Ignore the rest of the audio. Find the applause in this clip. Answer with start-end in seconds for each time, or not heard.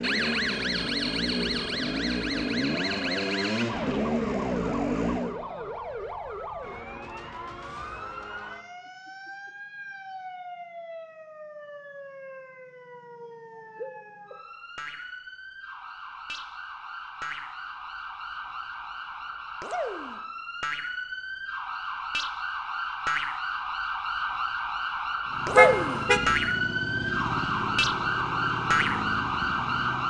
not heard.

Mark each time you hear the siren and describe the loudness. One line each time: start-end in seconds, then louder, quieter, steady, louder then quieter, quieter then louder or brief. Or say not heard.
0.0-30.0 quieter then louder.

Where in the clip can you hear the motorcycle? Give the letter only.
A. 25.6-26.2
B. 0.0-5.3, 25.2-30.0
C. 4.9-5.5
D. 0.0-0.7
B.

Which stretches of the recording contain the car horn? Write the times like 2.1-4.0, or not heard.
25.6-26.2.